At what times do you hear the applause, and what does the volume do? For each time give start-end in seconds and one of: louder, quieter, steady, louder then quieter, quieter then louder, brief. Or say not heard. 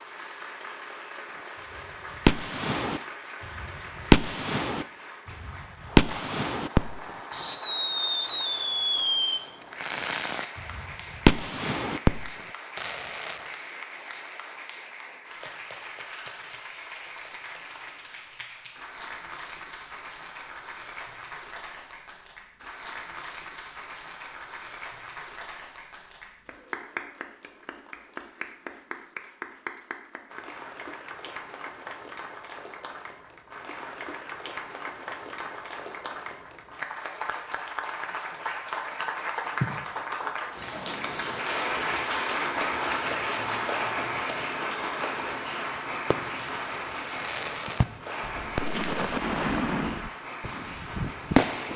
0.0-51.7 louder.